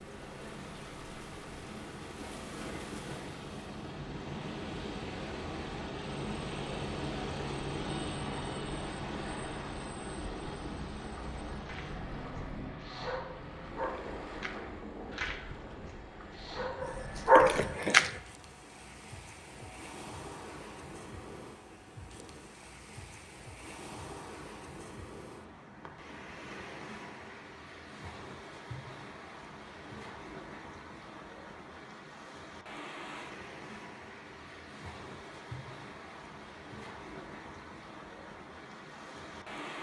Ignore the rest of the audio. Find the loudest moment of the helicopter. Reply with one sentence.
The volume of the helicopter peaks at 8 seconds.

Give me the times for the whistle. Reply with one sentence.
The whistle can't be heard in this clip.